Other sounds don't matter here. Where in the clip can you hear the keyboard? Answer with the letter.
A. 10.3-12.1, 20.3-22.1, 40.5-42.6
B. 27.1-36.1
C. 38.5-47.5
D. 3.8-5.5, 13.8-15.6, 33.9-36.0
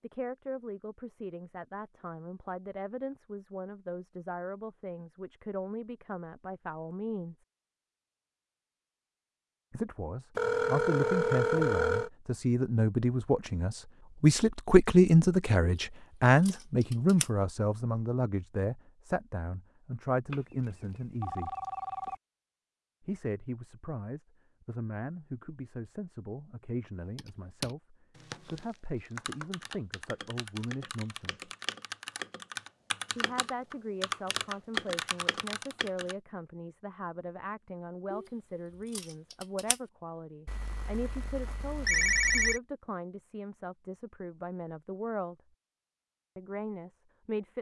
B.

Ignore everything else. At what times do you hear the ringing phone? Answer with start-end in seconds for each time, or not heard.
10.3-12.1, 20.3-22.1, 40.5-42.6.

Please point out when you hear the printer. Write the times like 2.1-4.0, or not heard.
not heard.